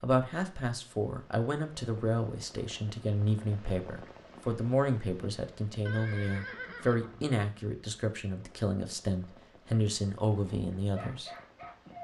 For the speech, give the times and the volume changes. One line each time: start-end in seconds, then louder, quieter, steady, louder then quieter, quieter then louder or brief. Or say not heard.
0.0-11.3 steady.